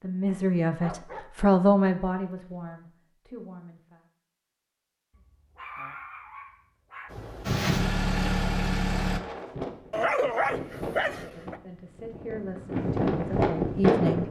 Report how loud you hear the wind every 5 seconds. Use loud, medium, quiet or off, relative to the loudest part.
off, medium, loud.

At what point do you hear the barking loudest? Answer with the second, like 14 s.
10 s.